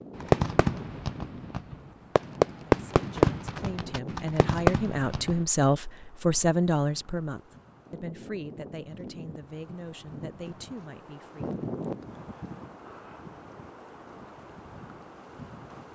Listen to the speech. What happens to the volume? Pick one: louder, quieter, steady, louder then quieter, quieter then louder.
louder then quieter.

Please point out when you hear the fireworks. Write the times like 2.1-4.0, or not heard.
0.1-5.4.